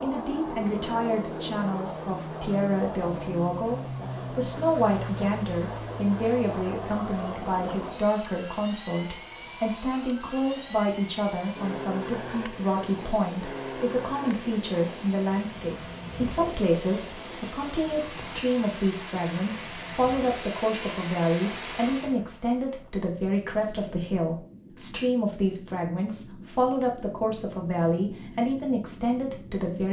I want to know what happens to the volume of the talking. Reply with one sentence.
The loudness of the talking stays about the same.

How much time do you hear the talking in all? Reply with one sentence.
You can hear the talking for 30 seconds altogether.